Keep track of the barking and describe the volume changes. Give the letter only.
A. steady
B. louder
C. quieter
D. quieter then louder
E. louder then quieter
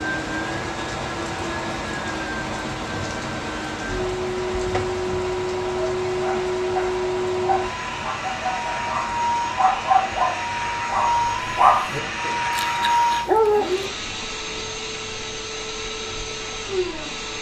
E.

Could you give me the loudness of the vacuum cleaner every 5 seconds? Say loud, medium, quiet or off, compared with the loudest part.
medium, loud, loud, medium.